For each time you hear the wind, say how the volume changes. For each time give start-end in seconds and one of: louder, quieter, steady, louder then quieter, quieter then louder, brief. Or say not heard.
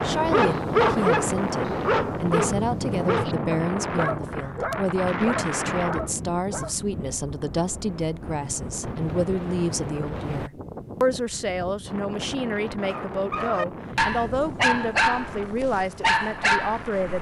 0.0-17.1 quieter.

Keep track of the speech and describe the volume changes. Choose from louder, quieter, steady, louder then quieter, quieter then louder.
steady.